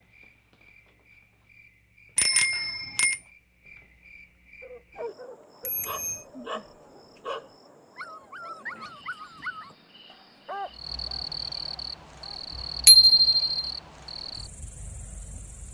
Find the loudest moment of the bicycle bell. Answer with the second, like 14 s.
13 s.